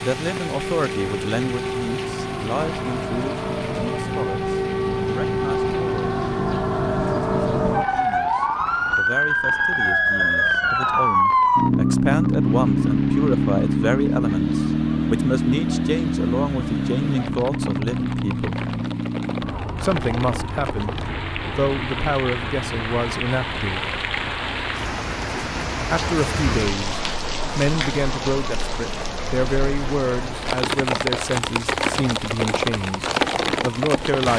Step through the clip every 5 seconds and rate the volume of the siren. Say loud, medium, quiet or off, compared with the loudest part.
medium, loud, loud, medium, quiet, quiet, quiet.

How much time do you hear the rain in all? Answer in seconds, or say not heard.
34 s.